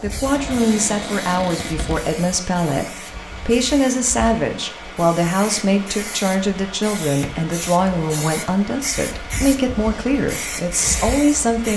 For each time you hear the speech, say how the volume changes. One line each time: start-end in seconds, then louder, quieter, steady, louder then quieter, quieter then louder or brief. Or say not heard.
0.0-11.7 steady.